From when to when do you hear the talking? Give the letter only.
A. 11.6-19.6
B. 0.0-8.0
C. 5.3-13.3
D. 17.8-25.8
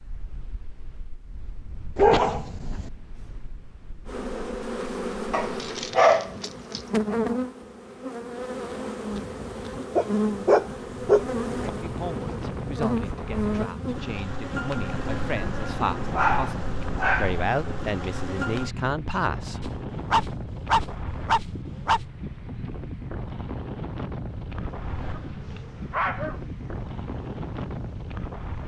A.